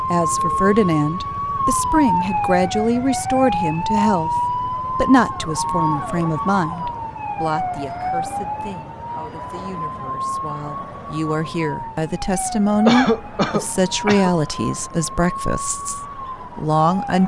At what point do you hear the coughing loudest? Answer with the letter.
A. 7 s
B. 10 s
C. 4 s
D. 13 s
D.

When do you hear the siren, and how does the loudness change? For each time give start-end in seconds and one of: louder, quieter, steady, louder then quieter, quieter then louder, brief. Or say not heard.
0.0-17.2 quieter.